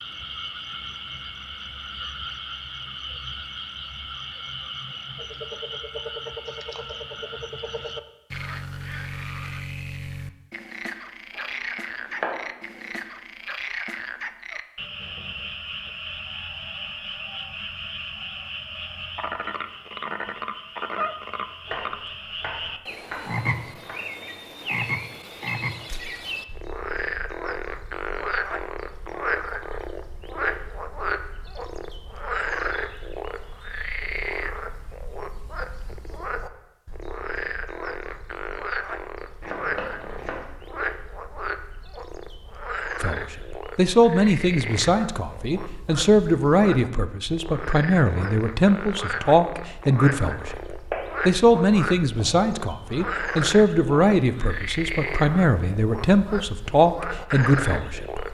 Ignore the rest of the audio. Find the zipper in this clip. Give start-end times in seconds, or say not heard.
not heard.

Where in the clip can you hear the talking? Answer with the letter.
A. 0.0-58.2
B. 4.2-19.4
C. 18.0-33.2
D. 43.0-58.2
D.